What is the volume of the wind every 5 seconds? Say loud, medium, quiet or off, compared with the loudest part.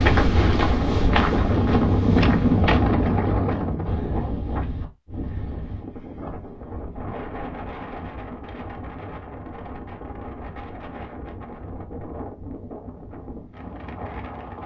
loud, quiet, quiet.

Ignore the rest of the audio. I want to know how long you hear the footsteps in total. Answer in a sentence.
You can hear the footsteps for 3 seconds altogether.